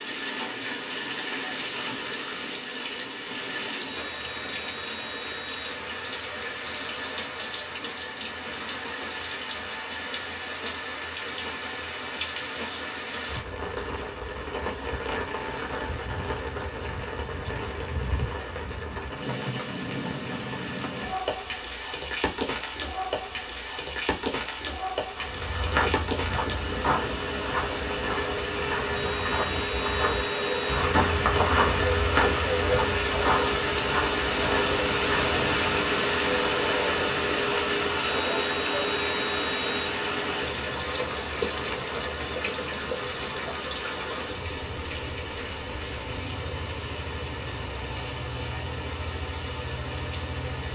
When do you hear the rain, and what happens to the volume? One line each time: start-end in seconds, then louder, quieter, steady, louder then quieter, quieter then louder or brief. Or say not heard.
0.0-50.6 louder then quieter.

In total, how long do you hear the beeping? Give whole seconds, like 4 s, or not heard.
5 s.